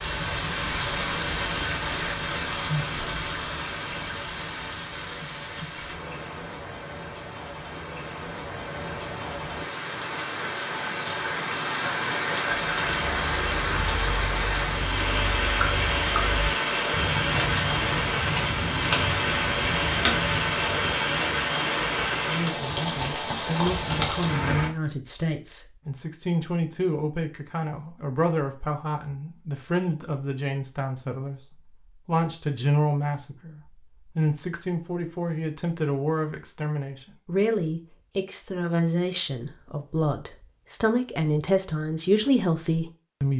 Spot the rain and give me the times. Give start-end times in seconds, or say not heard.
0.0-24.7.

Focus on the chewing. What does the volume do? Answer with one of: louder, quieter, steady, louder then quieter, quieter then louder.
louder.